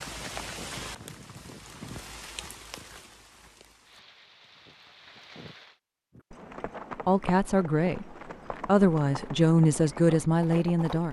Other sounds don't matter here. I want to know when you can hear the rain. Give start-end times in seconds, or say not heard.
0.0-5.8.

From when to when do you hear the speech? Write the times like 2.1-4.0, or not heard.
7.0-11.0.